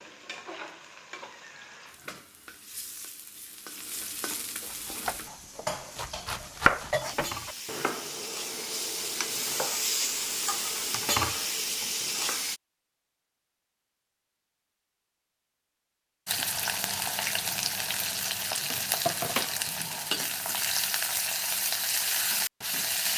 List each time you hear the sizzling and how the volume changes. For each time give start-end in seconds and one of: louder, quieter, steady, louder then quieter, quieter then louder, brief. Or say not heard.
0.0-12.6 louder
16.2-23.1 steady.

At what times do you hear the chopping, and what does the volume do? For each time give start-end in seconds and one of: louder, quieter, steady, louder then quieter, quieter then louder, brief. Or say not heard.
4.7-12.5 louder then quieter.